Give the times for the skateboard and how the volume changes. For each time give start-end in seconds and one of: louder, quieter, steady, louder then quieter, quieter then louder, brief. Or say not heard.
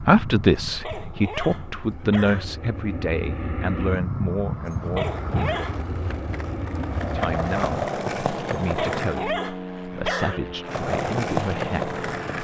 5.0-9.3 louder
10.7-12.3 brief.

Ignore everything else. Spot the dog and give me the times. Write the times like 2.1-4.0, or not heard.
0.7-2.5, 4.7-5.8, 8.7-10.4.